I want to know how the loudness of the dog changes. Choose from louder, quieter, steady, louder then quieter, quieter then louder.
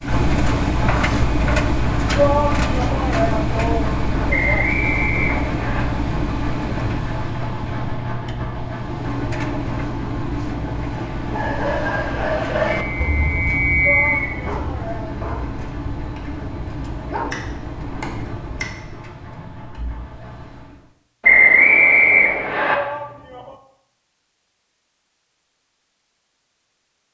quieter then louder.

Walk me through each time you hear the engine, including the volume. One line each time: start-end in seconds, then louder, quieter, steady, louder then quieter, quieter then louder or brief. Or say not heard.
0.0-20.9 quieter.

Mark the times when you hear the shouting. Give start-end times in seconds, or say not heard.
2.1-4.8, 13.8-15.2, 22.7-23.6.